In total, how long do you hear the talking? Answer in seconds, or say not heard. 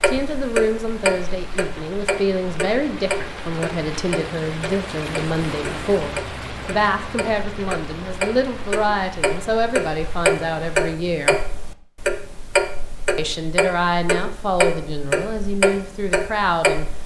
15 s.